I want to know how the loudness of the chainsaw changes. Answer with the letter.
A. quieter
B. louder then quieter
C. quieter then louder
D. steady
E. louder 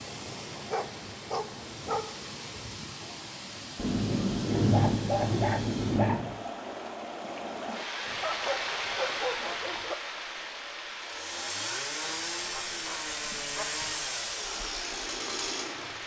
D.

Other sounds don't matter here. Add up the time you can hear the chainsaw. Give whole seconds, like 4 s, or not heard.
5 s.